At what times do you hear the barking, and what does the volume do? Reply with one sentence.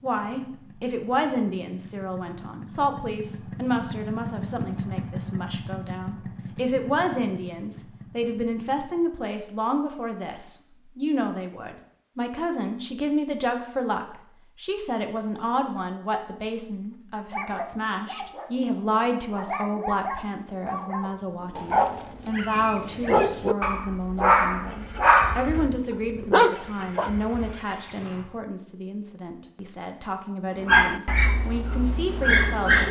You can hear the barking from 17.3 to 27.1 s, getting louder; and briefly from 30.6 to 32.8 s.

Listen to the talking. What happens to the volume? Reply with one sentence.
The volume of the talking stays about the same.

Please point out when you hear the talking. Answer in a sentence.
The talking can be heard from 0.0 to 32.8 s.